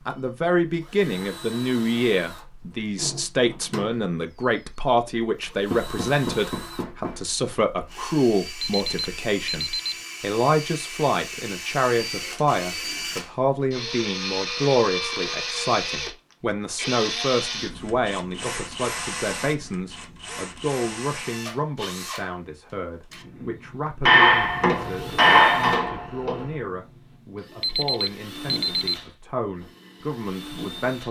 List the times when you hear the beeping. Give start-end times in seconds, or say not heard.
8.6-10.0, 27.6-29.0.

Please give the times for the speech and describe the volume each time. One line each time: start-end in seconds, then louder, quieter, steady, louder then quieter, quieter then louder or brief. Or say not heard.
0.1-31.0 quieter.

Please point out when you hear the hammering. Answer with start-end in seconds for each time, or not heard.
5.7-7.2, 24.1-26.4.